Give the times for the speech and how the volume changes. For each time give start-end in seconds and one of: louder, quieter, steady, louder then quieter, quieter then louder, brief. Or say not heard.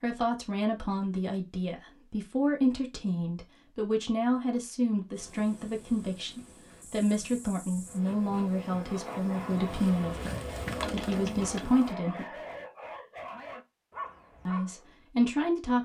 0.0-12.4 steady
14.4-15.8 brief.